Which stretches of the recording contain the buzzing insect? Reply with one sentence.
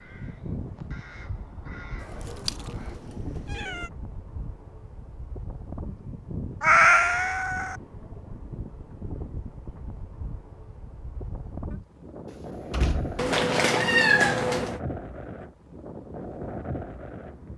The buzzing insect can't be heard in this clip.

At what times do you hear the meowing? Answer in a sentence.
You can hear the meowing from 2.1 to 3.9 s, from 6.6 to 7.8 s and from 13.2 to 14.8 s.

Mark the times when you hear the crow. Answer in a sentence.
You can hear the crow from 0.0 to 3.0 s.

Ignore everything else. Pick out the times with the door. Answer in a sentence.
The door can be heard from 12.3 to 13.3 s.